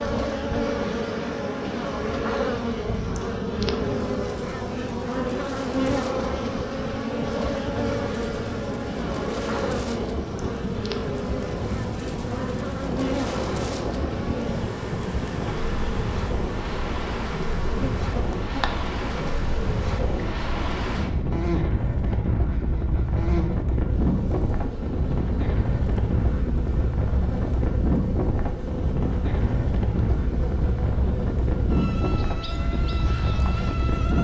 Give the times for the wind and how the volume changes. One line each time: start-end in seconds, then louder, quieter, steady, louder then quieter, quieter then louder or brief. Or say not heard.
0.0-34.1 louder.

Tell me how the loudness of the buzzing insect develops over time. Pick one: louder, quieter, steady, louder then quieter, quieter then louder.
quieter.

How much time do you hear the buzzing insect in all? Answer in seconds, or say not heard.
34 s.